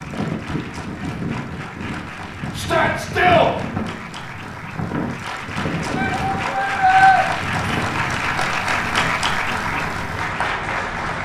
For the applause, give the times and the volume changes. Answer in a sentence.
The applause can be heard from 0.0 to 11.2 s, getting louder.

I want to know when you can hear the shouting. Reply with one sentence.
You can hear the shouting from 2.5 to 3.5 s and from 6.0 to 7.2 s.